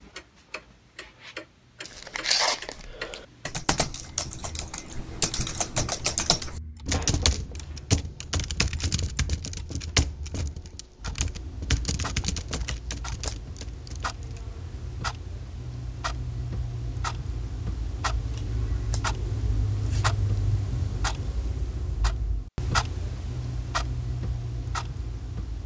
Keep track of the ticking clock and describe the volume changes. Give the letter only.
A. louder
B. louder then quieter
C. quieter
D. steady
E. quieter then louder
A.